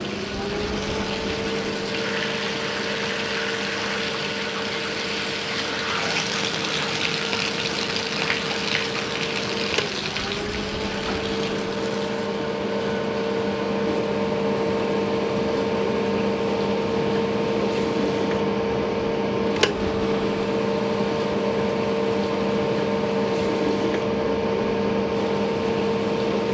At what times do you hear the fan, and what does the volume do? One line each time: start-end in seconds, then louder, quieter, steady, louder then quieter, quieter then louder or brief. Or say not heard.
0.0-26.4 louder.